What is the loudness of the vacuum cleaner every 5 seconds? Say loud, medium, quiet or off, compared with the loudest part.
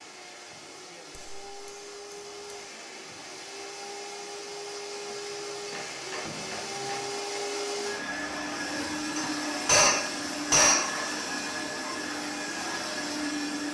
medium, loud, loud.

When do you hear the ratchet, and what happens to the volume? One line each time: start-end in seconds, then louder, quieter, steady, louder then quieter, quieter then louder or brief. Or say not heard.
not heard.